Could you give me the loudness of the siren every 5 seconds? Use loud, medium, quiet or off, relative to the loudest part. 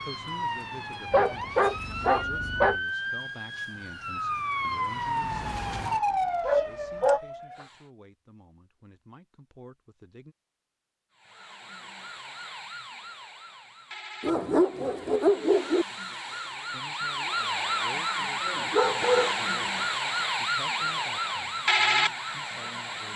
medium, loud, quiet, loud, loud.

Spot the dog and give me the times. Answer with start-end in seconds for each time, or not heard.
1.1-2.8, 6.5-7.2, 14.2-15.8, 18.7-19.4.